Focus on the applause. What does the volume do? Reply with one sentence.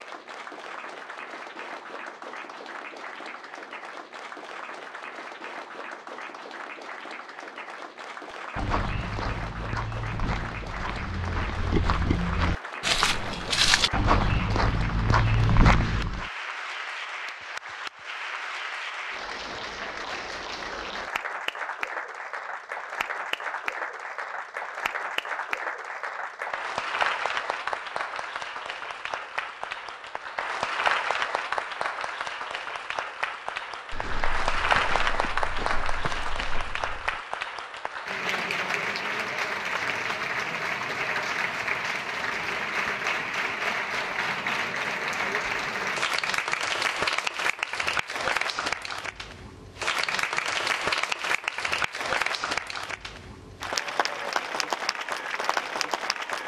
The volume of the applause goes up.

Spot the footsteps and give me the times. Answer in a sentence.
You can hear the footsteps from 8.6 to 16.3 s and from 33.9 to 37.2 s.